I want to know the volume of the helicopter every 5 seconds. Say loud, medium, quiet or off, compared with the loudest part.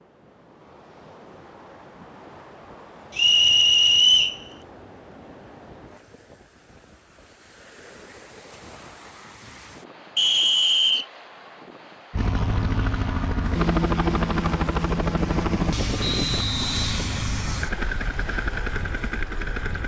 off, off, loud, loud.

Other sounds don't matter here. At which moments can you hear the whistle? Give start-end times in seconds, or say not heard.
3.1-4.4, 10.2-11.1, 15.9-16.9.